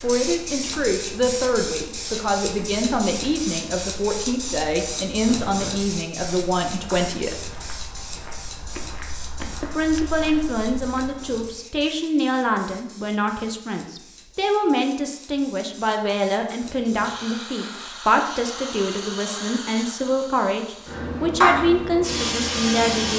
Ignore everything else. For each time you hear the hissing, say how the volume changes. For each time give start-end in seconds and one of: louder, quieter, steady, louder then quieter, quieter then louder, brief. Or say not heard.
0.0-23.1 quieter then louder.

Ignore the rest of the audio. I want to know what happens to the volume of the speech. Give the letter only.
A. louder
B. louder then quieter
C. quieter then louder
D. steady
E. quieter
D.